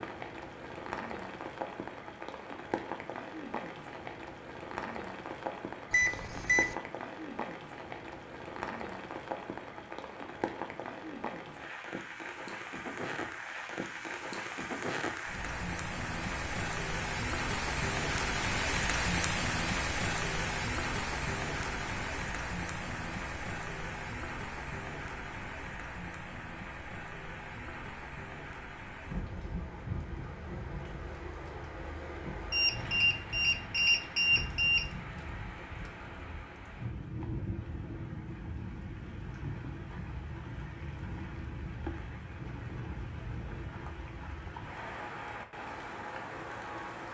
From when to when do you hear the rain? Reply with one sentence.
The rain can be heard from 0.0 to 47.0 s.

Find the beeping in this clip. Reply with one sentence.
The beeping can be heard from 5.9 to 6.8 s and from 32.5 to 34.9 s.